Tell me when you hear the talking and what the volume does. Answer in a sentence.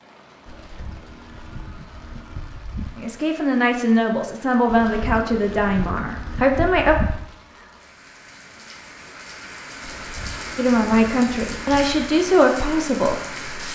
You can hear the talking from 3.0 to 7.0 s, at a steady volume; and briefly from 10.6 to 13.4 s.